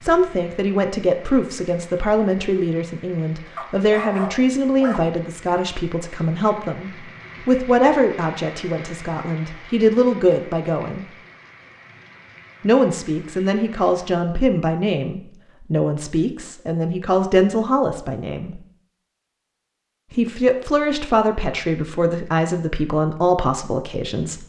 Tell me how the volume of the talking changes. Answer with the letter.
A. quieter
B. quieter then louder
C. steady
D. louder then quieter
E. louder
C.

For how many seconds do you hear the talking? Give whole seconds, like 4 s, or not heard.
21 s.